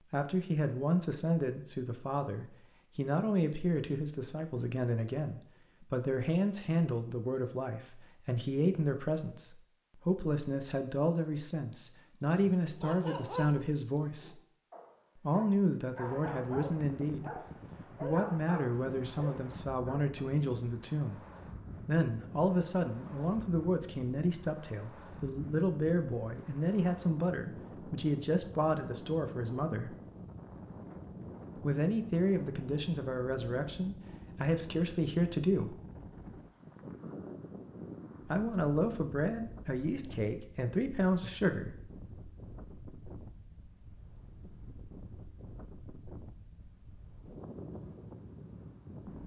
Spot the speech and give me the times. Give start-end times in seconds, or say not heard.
0.1-14.4, 15.2-21.2, 21.9-29.9, 31.6-35.8, 38.2-41.8.